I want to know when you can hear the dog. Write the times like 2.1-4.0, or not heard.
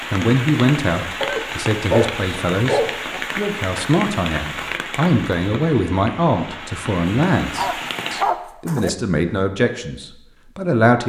1.2-3.2, 7.5-8.9.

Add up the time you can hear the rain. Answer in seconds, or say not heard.
8 s.